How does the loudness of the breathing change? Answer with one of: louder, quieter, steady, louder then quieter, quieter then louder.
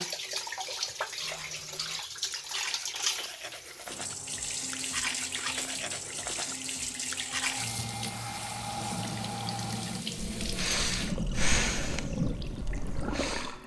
louder then quieter.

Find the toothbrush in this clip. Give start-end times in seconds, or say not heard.
1.2-7.8.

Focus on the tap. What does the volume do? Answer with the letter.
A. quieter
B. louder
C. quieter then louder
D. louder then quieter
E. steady
E.